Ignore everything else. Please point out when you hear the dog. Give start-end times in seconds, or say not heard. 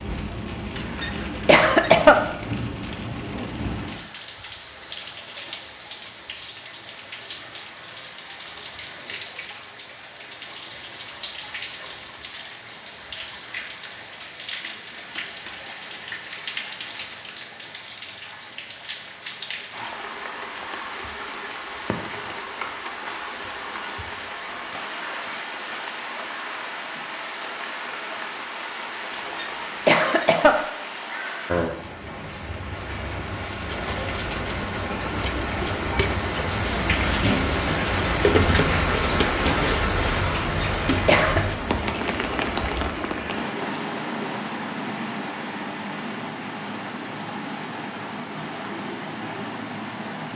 not heard.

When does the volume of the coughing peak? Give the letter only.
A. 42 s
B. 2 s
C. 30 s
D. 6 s
B.